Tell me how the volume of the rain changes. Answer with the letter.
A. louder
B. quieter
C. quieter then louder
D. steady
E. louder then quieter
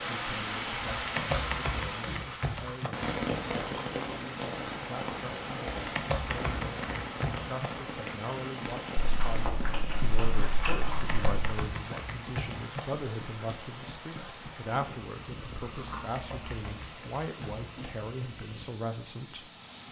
B.